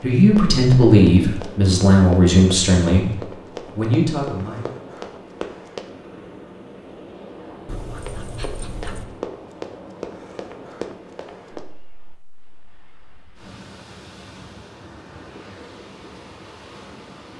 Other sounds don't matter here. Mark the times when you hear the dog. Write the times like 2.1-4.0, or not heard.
7.7-9.1.